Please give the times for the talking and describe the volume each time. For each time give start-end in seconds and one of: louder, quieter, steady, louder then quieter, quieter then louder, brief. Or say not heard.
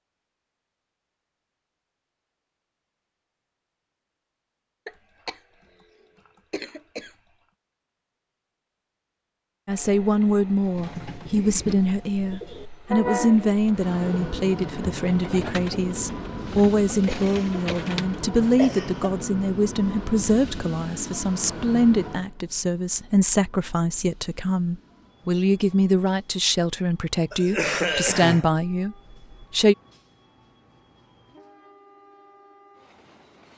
9.7-29.8 steady.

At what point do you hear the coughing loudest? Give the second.
28 s.